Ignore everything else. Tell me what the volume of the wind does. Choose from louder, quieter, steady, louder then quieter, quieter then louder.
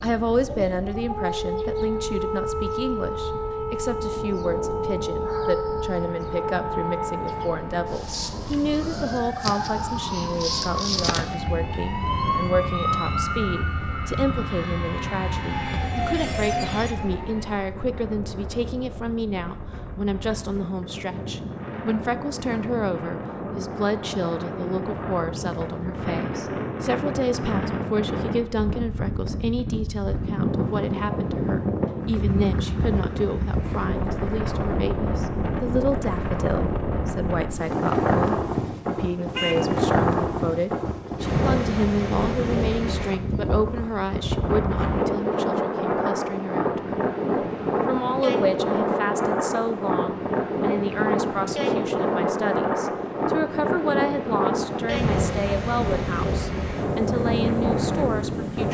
louder.